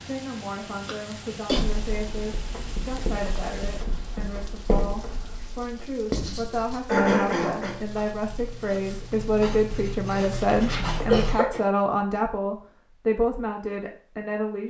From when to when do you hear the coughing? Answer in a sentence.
You can hear the coughing from 0.8 to 1.6 s, from 6.2 to 7.8 s and from 10.4 to 11.6 s.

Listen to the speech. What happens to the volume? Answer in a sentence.
The volume of the speech goes up.